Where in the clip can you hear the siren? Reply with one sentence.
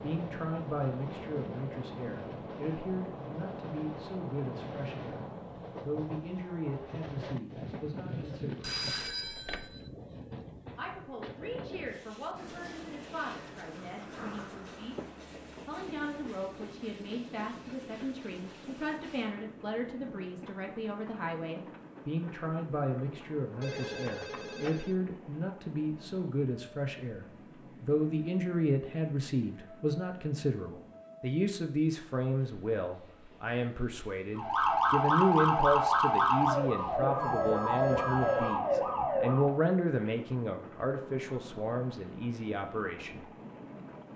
The siren can be heard from 34.4 to 39.6 s.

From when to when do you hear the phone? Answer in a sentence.
The phone can be heard from 8.6 to 9.9 s, from 23.6 to 24.9 s and from 37.1 to 38.6 s.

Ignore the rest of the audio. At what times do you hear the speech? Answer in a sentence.
The speech can be heard from 0.0 to 8.8 s, from 10.8 to 14.9 s and from 15.7 to 43.2 s.